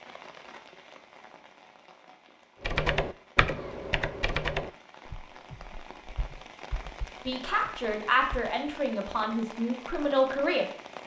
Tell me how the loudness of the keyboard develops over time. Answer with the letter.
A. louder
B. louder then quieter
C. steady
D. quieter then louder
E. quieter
E.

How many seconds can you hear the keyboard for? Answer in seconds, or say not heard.
6 s.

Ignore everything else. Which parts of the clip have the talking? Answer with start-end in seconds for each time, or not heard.
7.2-10.7.